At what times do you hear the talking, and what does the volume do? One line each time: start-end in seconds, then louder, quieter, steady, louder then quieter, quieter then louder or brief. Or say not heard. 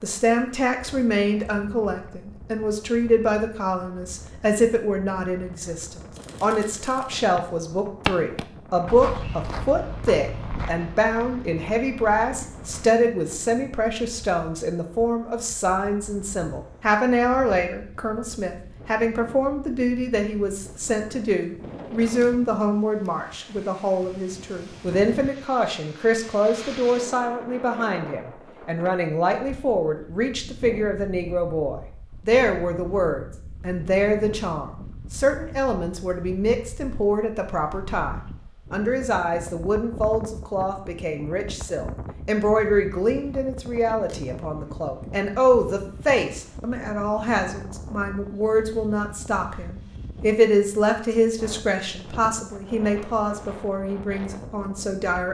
0.0-55.2 steady.